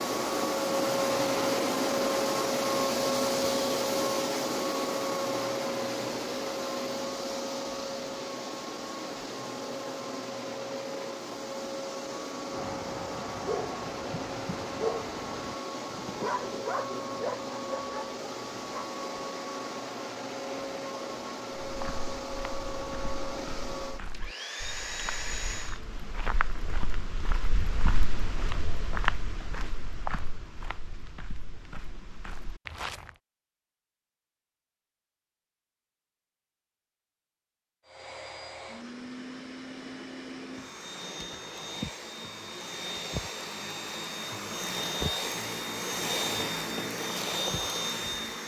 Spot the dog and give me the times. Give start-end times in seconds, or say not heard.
12.5-18.9.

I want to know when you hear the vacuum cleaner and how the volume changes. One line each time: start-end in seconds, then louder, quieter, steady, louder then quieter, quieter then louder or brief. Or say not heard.
0.0-25.8 quieter
37.9-48.4 louder.